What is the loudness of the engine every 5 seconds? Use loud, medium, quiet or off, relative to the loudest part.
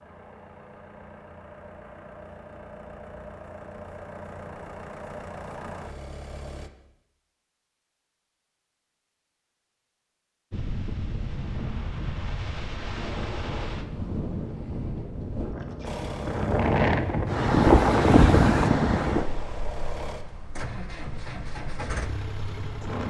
medium, loud, off, loud, loud.